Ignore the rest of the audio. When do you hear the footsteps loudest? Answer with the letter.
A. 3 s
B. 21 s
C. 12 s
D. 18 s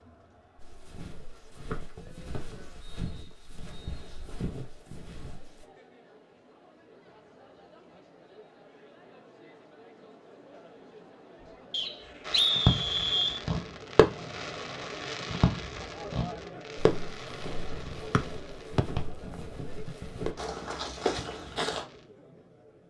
B.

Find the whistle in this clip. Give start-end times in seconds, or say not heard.
1.7-4.2, 11.7-13.4, 18.1-18.9.